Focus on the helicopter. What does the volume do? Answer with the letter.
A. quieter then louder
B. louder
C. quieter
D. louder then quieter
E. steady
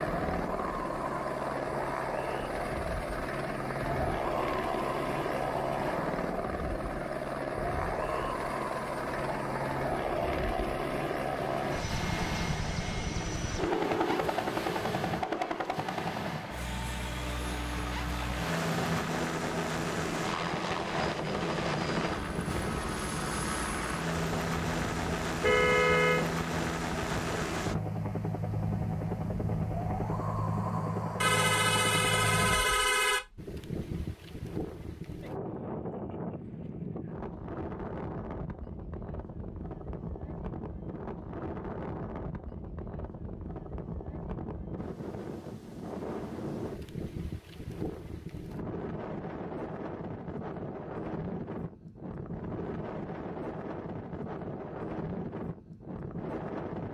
E.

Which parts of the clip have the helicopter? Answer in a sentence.
You can hear the helicopter from 0.0 to 32.5 s.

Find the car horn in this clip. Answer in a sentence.
The car horn can be heard from 25.4 to 26.2 s and from 31.2 to 33.2 s.